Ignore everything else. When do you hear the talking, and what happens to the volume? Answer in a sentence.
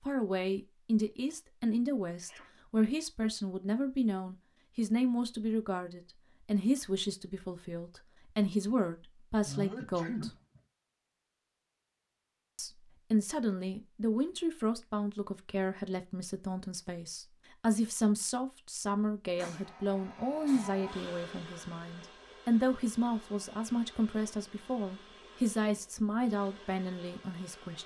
You can hear the talking from 0.0 to 10.3 s, at a steady volume; and from 12.6 to 27.8 s, at a steady volume.